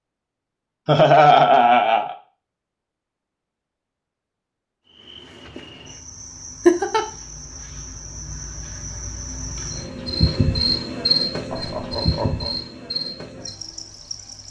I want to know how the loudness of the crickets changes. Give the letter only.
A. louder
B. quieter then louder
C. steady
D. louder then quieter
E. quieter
D.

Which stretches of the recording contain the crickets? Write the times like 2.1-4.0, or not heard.
4.8-14.4.